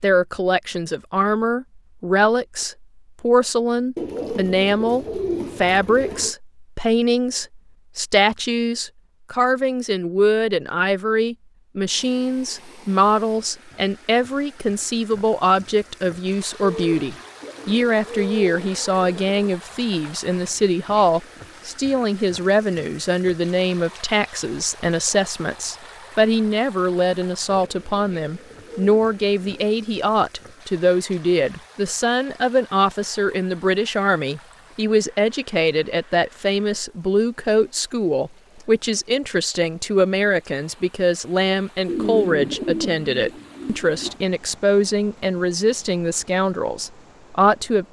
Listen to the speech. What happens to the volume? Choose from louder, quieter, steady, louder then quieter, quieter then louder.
steady.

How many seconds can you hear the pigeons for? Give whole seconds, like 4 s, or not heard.
10 s.